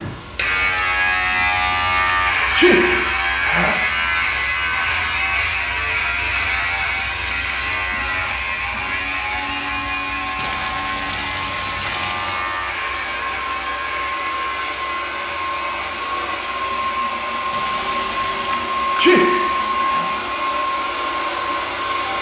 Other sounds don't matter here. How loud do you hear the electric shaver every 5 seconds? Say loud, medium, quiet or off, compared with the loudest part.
loud, loud, medium, quiet, quiet.